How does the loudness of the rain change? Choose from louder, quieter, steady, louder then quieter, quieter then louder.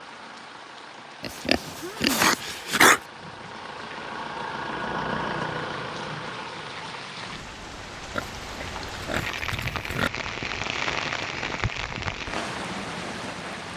louder.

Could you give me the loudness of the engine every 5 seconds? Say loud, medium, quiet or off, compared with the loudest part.
medium, loud, off.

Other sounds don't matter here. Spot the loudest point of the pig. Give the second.
3 s.